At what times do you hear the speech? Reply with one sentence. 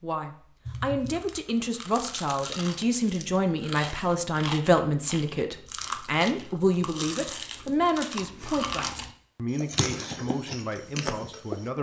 You can hear the speech from 0.0 to 11.7 s.